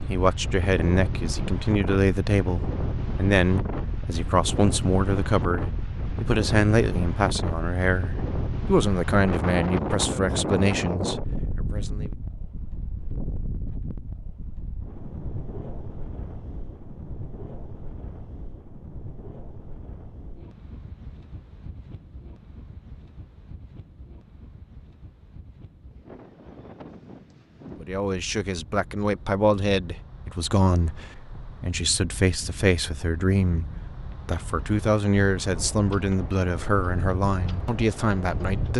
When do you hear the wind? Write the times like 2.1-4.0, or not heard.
0.0-38.7.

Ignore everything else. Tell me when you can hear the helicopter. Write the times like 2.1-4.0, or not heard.
not heard.